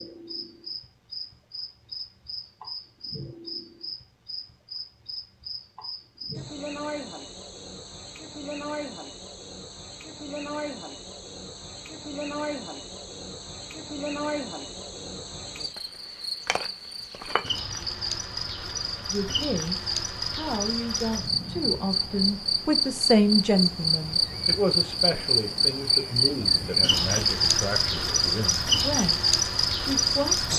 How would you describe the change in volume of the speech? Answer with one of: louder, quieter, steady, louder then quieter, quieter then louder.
louder then quieter.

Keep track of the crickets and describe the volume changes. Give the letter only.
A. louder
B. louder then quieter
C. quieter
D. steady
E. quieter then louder
A.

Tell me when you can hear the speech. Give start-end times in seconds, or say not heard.
19.1-30.5.